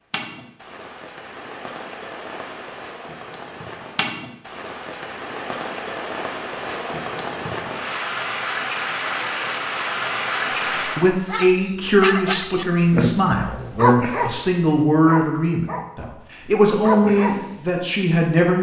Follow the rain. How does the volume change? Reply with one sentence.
The volume of the rain goes up.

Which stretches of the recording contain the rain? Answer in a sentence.
The rain can be heard from 0.1 to 11.1 s.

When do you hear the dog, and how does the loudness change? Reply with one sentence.
You can hear the dog from 11.3 to 16.1 s, getting quieter; and briefly from 16.8 to 17.6 s.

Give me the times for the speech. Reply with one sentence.
The speech can be heard from 10.9 to 18.5 s.